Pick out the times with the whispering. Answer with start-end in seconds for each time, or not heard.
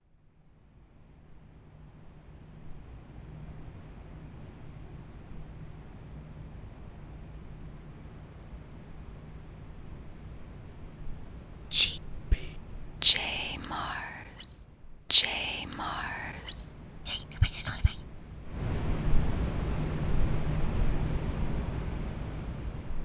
11.7-17.9.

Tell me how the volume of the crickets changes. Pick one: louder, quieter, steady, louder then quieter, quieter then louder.
louder.